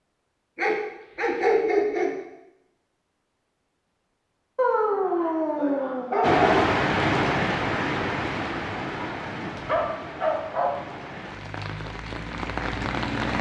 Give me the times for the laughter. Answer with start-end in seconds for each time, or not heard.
not heard.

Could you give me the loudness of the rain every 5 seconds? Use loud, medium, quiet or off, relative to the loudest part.
off, loud, medium.